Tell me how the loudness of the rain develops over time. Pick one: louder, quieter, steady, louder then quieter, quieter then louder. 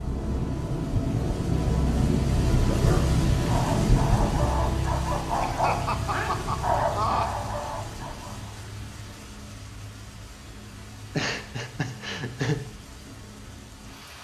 quieter.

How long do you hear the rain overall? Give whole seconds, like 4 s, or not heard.
14 s.